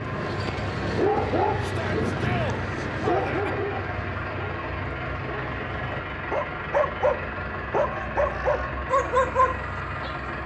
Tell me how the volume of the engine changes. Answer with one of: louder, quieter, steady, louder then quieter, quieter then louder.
steady.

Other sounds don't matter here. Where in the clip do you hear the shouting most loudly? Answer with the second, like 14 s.
3 s.